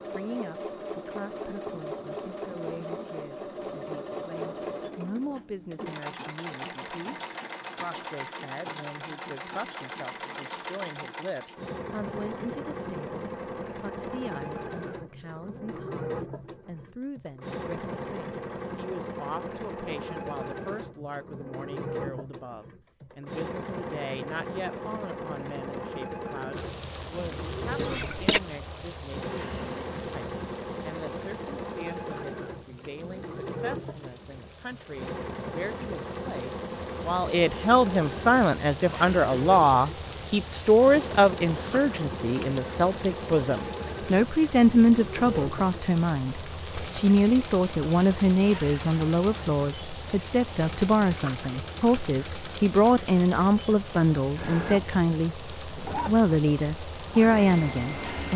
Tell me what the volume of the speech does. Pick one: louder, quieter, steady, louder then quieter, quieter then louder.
louder.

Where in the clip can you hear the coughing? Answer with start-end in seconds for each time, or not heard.
27.8-28.4.